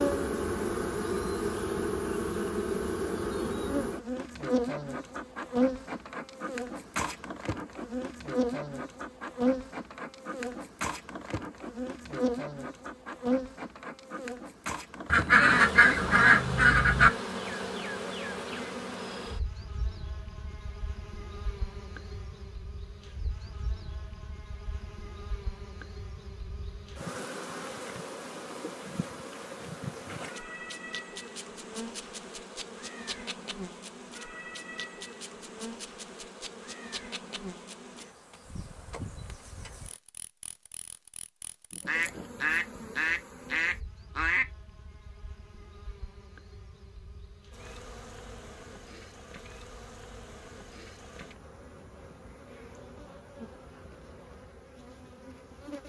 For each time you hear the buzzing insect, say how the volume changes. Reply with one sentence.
You can hear the buzzing insect from 0.0 to 55.8 s, getting quieter.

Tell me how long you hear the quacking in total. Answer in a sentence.
You can hear the quacking for 5 seconds altogether.